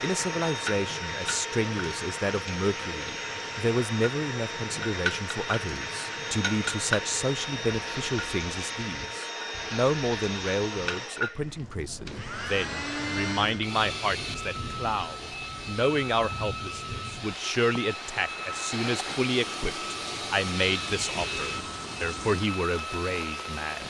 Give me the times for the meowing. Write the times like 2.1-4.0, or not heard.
not heard.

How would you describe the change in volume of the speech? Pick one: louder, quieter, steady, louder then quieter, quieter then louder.
steady.